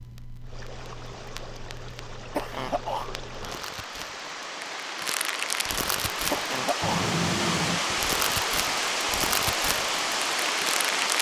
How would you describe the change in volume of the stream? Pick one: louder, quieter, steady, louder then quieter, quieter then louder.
louder.